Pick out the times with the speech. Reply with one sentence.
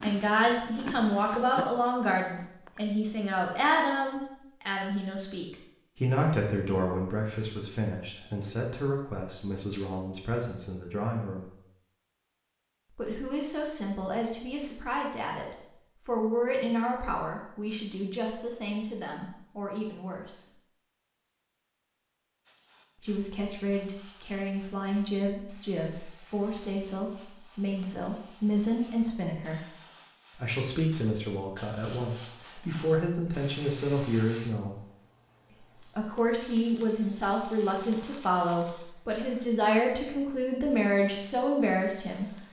You can hear the speech from 0.0 to 11.5 s, from 12.9 to 20.4 s, from 23.0 to 29.8 s, from 30.4 to 34.8 s and from 35.8 to 42.4 s.